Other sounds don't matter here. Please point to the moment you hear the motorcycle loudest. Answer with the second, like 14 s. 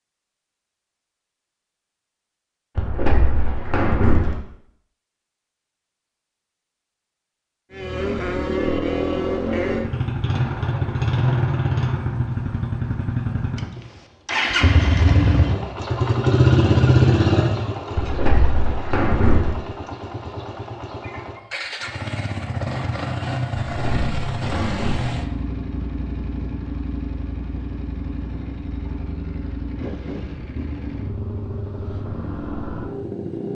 17 s.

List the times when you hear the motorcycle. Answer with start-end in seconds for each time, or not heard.
7.7-33.4.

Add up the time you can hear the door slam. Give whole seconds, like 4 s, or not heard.
5 s.